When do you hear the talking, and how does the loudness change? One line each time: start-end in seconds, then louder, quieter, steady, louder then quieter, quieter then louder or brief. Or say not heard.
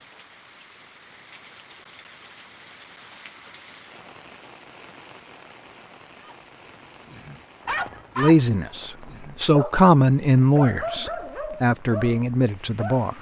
8.2-13.1 louder then quieter.